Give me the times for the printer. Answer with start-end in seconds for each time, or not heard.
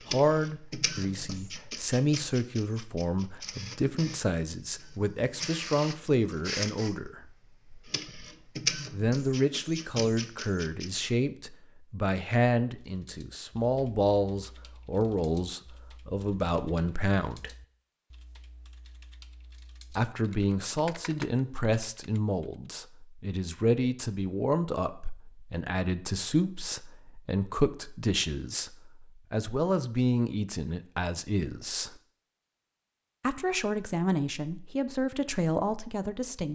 0.0-11.2.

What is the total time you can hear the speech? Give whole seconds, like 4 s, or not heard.
31 s.